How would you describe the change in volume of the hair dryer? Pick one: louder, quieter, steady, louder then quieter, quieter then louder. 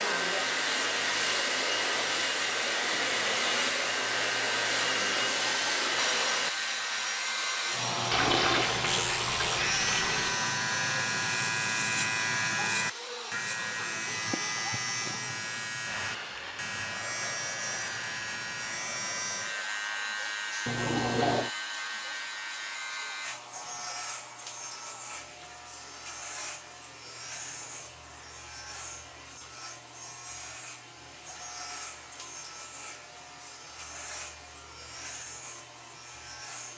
quieter.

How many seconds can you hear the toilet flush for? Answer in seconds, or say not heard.
3 s.